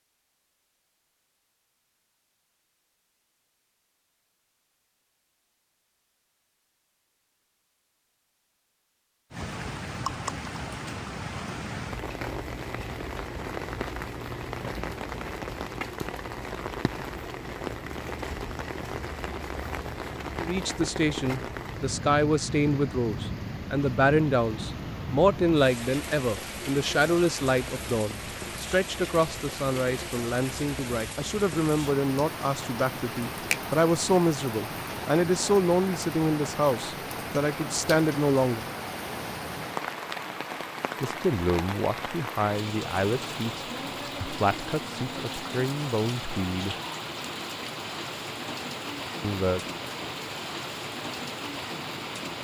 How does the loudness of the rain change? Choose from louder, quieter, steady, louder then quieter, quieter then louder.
steady.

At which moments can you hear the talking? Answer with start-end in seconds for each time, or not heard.
20.4-38.6, 41.0-46.8, 49.2-49.6.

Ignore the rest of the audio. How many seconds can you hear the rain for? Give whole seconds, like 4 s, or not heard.
43 s.